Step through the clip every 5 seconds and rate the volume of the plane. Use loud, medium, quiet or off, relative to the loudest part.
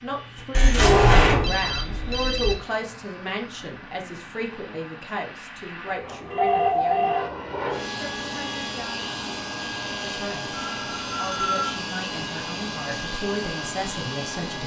medium, loud, loud.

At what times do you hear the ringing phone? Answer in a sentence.
You can hear the ringing phone from 0.6 to 2.5 s, from 6.3 to 7.3 s and from 10.8 to 11.8 s.